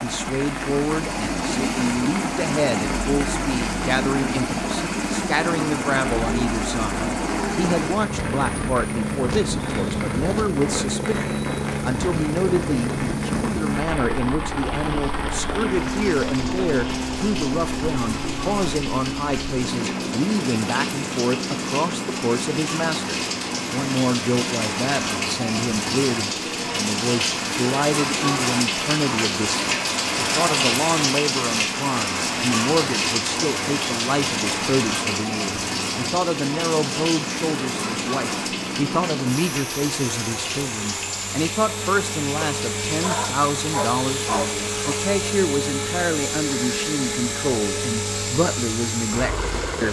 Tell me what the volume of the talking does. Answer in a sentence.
The volume of the talking stays about the same.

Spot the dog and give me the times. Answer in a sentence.
The dog can be heard from 42.4 to 45.0 s.